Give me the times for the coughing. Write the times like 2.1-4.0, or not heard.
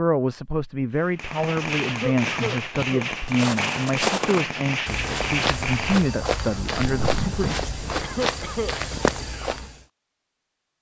1.9-3.0, 8.0-9.2.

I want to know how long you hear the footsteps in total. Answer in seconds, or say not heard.
7 s.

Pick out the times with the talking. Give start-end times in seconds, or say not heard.
0.0-7.5.